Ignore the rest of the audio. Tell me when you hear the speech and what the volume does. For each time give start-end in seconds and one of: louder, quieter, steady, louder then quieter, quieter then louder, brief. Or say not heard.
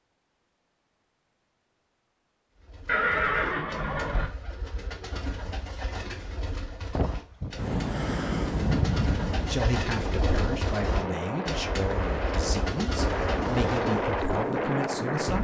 9.4-15.3 steady.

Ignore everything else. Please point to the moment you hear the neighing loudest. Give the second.
3 s.